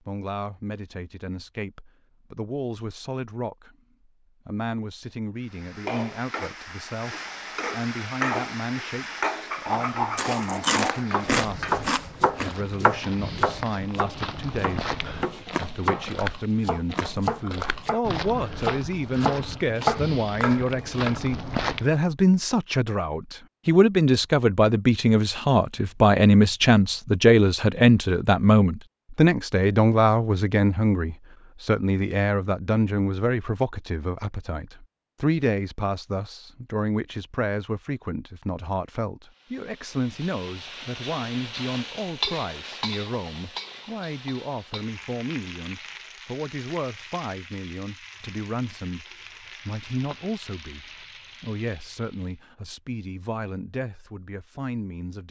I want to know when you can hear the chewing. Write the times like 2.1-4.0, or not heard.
10.2-12.6.